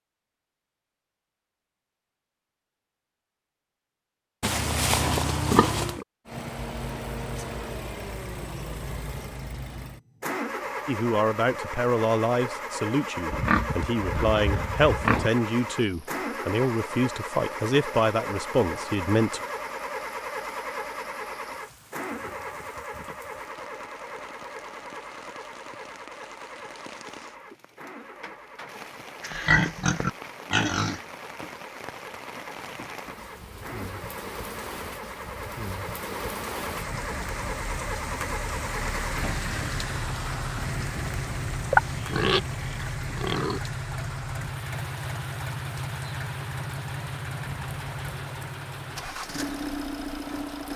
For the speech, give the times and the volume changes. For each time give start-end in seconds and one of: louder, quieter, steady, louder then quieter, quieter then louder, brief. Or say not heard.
10.8-19.4 steady.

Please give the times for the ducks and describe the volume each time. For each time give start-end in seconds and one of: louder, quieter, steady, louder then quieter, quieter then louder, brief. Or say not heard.
not heard.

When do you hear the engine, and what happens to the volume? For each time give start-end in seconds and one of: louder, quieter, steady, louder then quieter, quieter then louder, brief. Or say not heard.
6.2-50.7 quieter then louder.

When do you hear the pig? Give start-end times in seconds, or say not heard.
4.4-6.0, 13.3-15.3, 29.2-31.1, 41.6-42.4, 43.1-43.6.